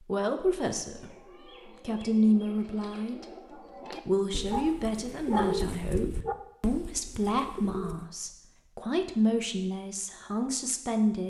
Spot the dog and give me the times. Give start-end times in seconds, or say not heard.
4.5-6.3.